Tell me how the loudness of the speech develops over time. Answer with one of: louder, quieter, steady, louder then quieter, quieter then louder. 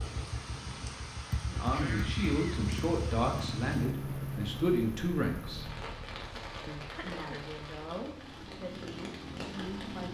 quieter.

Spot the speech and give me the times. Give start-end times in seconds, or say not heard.
1.4-5.7, 6.7-10.0.